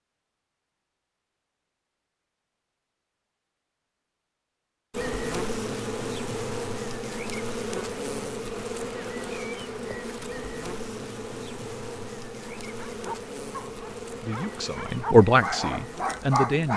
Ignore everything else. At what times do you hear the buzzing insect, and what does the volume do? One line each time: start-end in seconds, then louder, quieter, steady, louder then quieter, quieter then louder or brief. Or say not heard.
4.9-16.7 quieter.